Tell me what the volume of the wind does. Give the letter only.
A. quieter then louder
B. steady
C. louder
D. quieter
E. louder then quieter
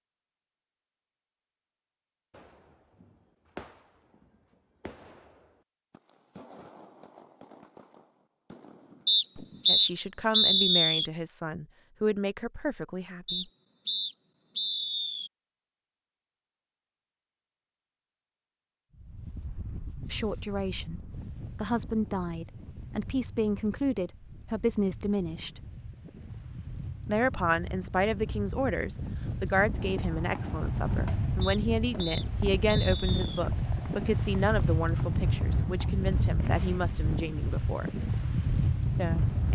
C.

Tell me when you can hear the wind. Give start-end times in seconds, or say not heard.
18.9-39.4.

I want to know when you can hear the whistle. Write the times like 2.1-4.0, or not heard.
9.1-11.1, 13.2-15.3, 31.4-33.4.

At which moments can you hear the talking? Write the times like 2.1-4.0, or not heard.
9.7-13.4, 20.1-25.6, 27.1-38.0, 39.0-39.4.